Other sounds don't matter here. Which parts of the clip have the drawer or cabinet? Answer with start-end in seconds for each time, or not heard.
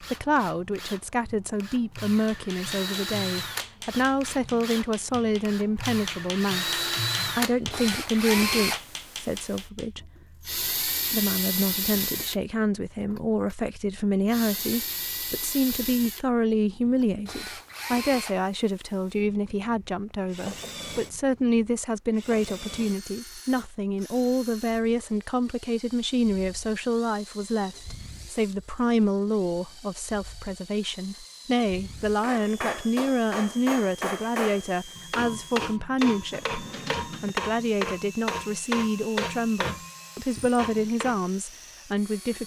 36.3-37.4.